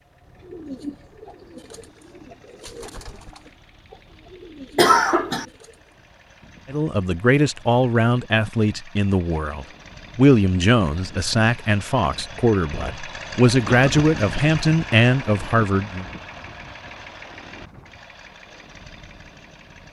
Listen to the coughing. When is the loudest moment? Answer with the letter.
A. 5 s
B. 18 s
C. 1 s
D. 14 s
A.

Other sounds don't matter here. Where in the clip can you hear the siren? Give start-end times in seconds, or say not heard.
not heard.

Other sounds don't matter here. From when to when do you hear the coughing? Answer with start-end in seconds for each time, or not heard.
4.8-5.5, 13.7-14.1.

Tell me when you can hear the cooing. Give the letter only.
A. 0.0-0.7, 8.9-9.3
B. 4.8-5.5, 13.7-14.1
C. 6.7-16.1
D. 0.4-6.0
D.